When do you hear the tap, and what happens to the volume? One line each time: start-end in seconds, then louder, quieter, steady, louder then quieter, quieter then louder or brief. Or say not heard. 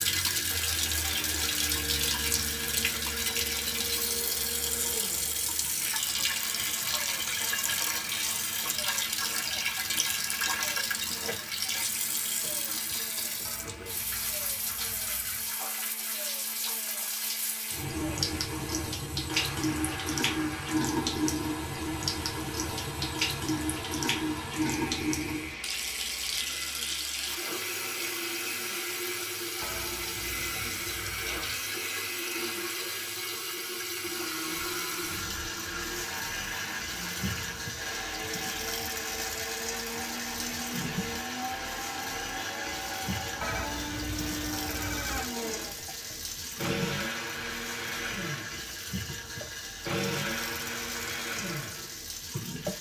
0.0-52.7 quieter.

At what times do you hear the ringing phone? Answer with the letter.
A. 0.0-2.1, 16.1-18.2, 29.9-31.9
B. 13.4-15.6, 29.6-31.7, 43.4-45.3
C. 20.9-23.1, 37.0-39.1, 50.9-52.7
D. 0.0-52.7
B.